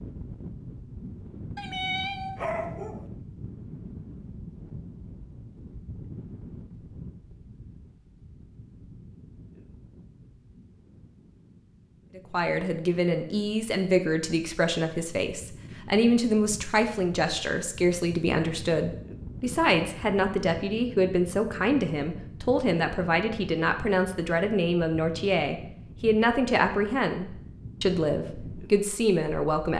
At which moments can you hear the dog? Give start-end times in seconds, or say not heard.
1.6-3.0.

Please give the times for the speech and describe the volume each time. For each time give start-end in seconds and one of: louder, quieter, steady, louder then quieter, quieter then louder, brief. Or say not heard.
12.2-29.7 steady.